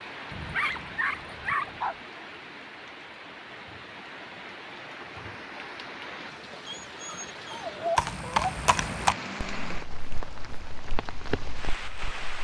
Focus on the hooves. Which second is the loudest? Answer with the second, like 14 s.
9 s.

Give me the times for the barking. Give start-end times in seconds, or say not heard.
0.3-1.9, 6.7-8.6.